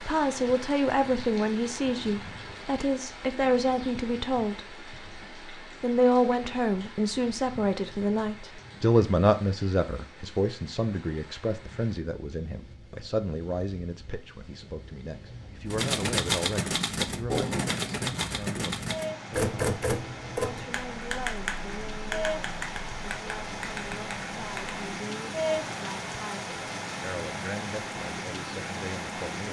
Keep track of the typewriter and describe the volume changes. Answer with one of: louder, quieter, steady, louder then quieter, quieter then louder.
quieter.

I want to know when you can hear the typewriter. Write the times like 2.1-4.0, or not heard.
15.7-24.8.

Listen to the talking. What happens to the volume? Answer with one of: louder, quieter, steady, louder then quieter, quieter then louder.
quieter.